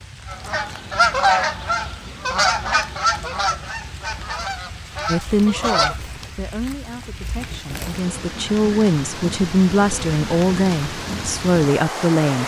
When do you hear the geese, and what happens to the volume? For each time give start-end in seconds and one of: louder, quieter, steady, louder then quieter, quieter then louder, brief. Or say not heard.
0.2-6.0 quieter.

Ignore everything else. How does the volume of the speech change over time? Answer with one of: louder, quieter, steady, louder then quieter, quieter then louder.
quieter then louder.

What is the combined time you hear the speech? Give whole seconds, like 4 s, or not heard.
7 s.